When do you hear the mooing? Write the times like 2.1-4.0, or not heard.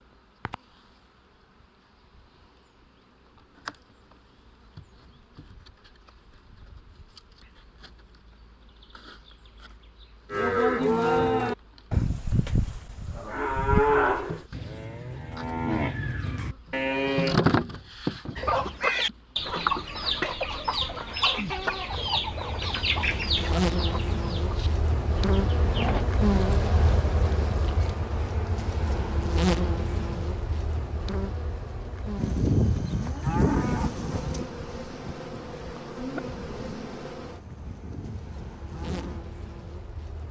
10.3-17.4, 32.1-39.2.